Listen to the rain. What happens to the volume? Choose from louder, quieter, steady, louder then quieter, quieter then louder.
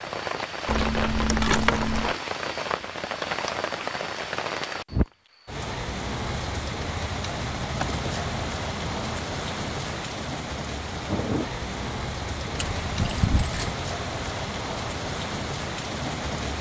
steady.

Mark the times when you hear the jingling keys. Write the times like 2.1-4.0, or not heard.
0.7-2.1, 7.7-9.2, 12.6-13.8.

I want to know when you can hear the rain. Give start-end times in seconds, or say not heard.
0.0-16.5.